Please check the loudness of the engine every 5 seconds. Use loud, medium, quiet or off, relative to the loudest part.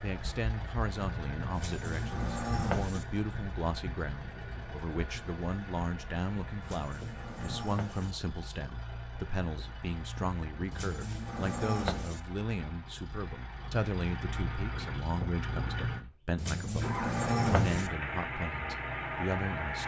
medium, medium, medium, loud.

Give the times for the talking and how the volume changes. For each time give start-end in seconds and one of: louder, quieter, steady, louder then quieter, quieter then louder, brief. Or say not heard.
0.0-19.8 steady.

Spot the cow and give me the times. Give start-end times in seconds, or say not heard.
1.6-3.0, 6.6-8.2, 10.7-12.2, 16.4-17.9.